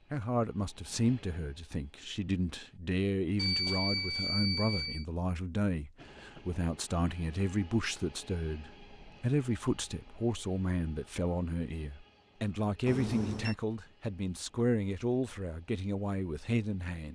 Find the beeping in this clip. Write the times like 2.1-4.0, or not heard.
3.4-5.0, 12.8-13.6.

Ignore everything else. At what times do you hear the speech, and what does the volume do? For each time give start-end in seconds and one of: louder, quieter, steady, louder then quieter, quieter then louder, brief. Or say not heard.
0.1-17.0 steady.